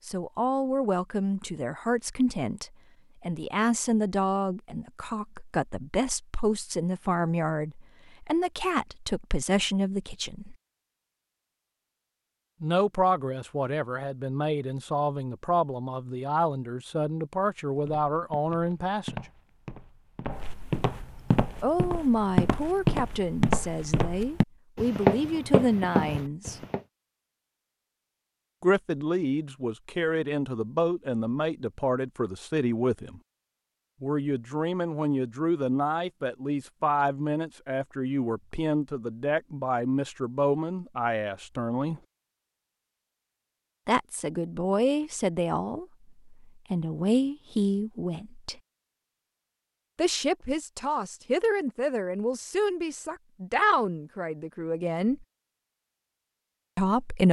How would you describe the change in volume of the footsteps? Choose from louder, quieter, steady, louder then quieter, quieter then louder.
louder.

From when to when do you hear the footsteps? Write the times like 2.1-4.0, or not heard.
17.8-26.8.